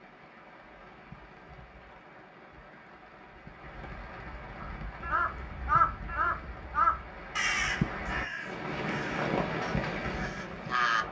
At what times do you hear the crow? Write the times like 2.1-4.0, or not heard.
4.6-11.0.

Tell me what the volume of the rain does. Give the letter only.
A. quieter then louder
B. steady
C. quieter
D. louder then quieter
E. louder
E.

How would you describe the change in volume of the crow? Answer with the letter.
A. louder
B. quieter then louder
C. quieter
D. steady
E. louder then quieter
C.